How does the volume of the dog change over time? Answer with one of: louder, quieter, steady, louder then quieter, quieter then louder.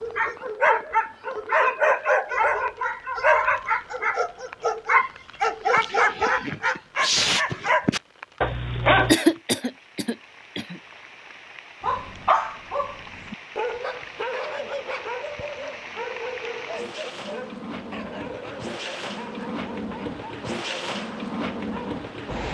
quieter.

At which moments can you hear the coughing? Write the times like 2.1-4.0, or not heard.
9.1-10.8.